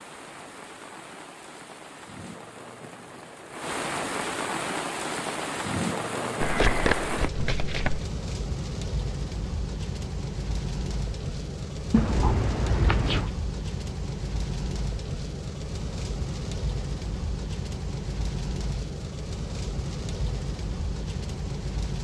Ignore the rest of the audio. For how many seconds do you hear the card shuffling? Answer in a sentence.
You can hear the card shuffling for 3 seconds altogether.